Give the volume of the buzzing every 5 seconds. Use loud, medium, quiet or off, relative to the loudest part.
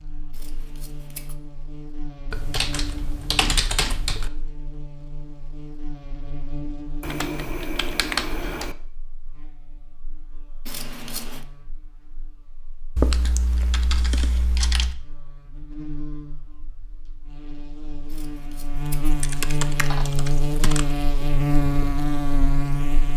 quiet, quiet, quiet, medium, loud.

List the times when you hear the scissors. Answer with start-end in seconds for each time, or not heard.
0.3-1.4, 10.7-11.4, 18.1-19.2.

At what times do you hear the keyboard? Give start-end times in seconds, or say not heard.
2.3-4.3, 7.0-8.8, 12.9-14.9, 19.2-20.9.